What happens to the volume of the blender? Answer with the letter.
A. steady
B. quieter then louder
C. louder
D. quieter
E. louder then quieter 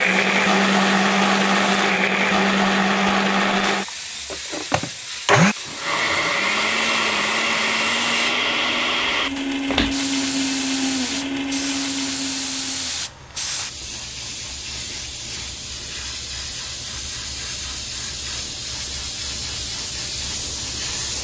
D.